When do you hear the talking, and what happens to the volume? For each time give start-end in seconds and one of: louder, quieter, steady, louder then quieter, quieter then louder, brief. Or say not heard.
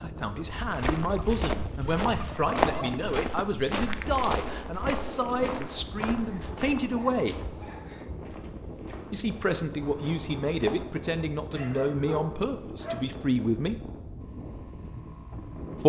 0.0-7.3 steady
9.1-13.8 steady.